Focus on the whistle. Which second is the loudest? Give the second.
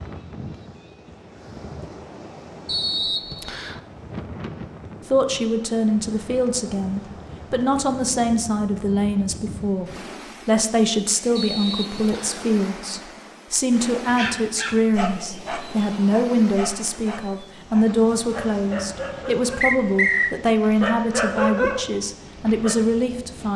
20 s.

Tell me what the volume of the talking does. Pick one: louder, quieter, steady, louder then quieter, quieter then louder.
steady.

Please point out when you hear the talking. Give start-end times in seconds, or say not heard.
5.1-23.5.